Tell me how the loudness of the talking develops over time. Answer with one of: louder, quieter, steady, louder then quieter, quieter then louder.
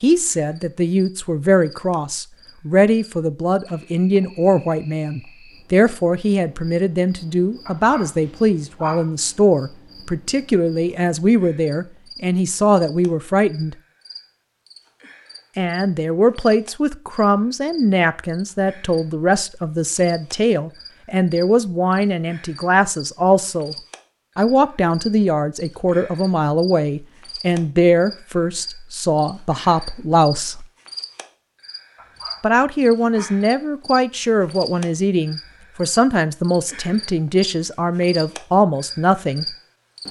steady.